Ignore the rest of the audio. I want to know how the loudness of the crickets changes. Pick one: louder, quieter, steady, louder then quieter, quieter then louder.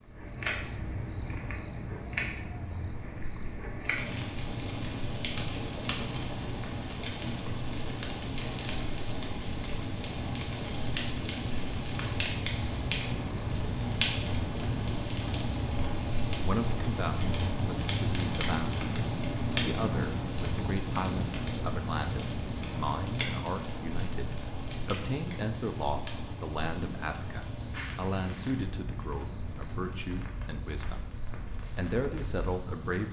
louder then quieter.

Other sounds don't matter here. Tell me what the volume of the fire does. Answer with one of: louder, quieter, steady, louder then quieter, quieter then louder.
quieter.